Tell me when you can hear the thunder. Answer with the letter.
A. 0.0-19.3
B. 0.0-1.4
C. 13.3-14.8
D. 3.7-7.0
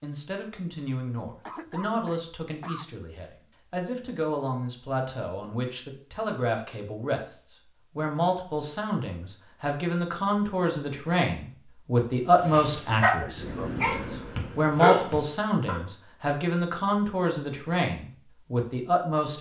C.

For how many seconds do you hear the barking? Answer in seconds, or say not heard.
3 s.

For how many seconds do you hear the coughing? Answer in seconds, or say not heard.
2 s.